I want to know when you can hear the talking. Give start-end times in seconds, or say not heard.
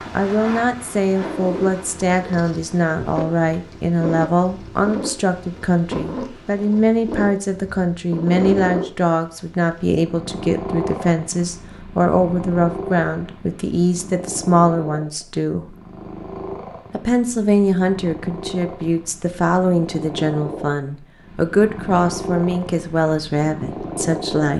0.1-15.7, 16.9-24.5.